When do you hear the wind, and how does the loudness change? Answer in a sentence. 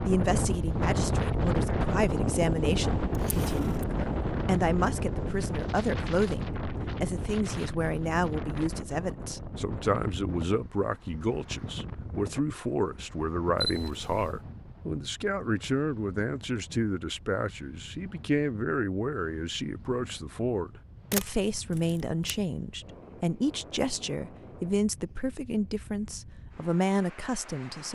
You can hear the wind from 0.0 to 27.9 s, getting quieter.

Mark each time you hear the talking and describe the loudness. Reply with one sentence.
You can hear the talking from 0.0 to 27.9 s, at a steady volume.